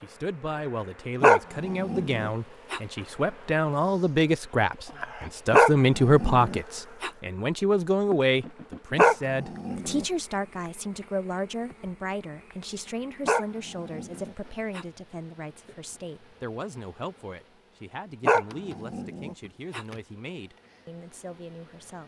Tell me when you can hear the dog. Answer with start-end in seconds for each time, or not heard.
1.2-2.8, 5.5-7.1, 8.9-10.1, 13.2-14.8, 18.2-19.9.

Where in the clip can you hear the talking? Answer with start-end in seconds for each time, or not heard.
0.0-22.0.